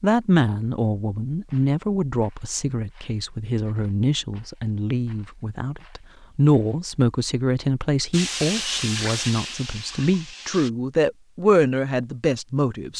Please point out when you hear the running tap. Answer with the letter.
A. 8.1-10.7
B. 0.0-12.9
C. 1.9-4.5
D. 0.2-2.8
A.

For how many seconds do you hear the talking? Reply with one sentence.
You can hear the talking for 13 seconds altogether.